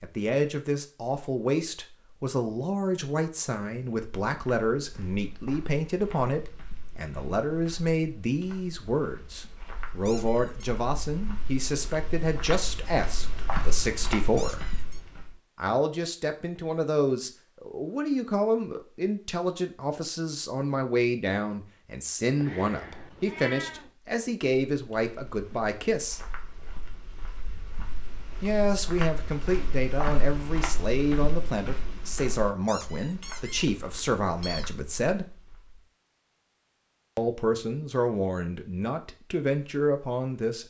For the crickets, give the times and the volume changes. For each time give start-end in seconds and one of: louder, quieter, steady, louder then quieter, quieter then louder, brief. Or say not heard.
not heard.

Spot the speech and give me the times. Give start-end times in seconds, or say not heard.
0.0-14.6, 15.6-26.2, 28.4-35.4, 37.1-40.6.